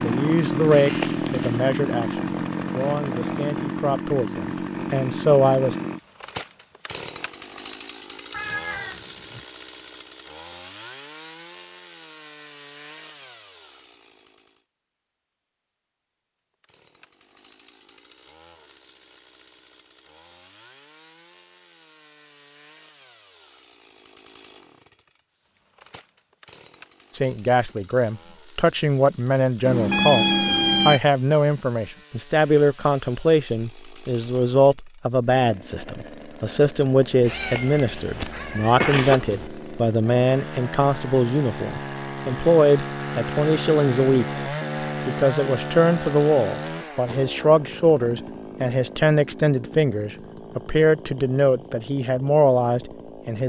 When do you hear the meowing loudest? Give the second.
30 s.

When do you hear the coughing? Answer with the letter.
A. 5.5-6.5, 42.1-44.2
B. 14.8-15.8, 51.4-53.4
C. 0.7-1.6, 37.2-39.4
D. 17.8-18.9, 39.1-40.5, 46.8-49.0
C.